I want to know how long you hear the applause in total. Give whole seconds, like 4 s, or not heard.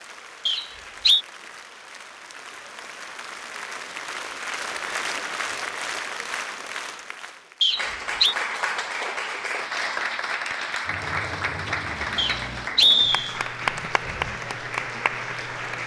16 s.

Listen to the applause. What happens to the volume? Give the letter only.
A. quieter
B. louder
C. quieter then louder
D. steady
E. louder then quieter
B.